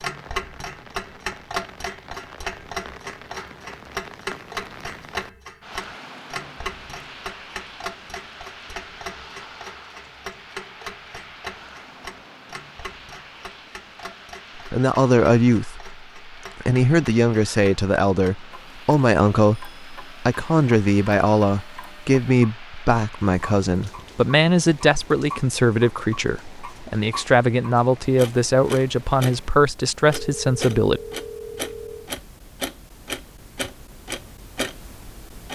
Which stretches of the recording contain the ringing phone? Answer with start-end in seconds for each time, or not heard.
30.1-32.1.